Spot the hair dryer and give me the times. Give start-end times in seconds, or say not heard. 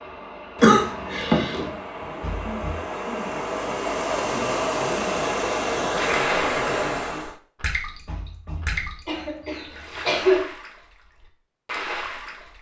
0.0-7.4.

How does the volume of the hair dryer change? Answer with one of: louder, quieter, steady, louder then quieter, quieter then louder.
louder.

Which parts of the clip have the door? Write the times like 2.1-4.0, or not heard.
2.2-2.9, 8.1-9.2.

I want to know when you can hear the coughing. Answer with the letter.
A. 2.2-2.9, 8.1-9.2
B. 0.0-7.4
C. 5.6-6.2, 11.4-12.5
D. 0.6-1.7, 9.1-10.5
D.